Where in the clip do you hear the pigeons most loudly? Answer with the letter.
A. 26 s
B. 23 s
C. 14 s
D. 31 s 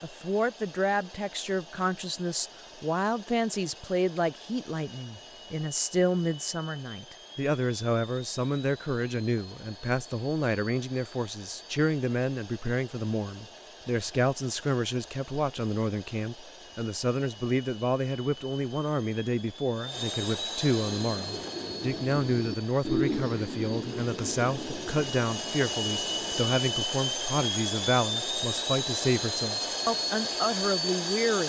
B.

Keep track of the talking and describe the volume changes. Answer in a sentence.
The volume of the talking stays about the same.